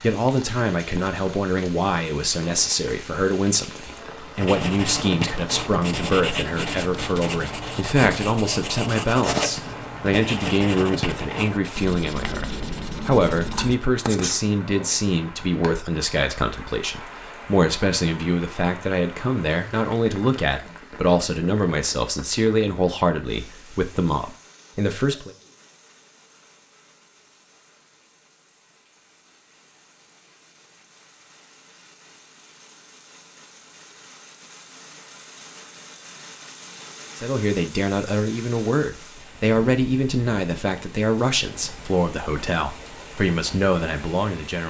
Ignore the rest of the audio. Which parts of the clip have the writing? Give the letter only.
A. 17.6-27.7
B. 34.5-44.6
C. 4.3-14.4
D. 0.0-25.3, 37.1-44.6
C.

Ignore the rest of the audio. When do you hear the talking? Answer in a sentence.
You can hear the talking from 0.0 to 25.3 s and from 37.1 to 44.6 s.